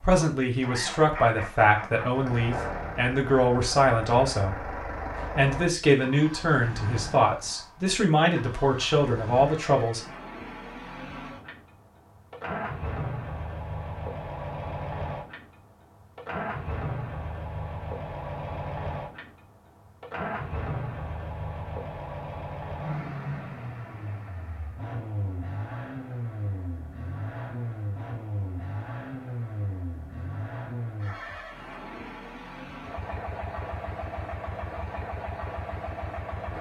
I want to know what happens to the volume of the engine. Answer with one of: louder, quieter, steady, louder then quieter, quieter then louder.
steady.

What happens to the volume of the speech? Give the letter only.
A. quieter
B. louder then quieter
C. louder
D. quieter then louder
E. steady
E.